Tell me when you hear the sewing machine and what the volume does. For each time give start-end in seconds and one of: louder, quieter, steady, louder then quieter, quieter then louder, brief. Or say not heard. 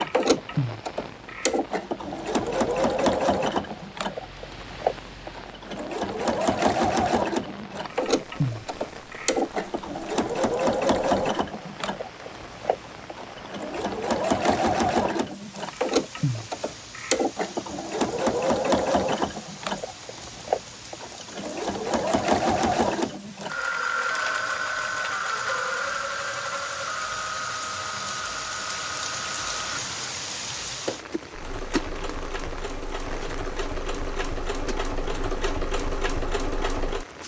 0.0-37.0 quieter.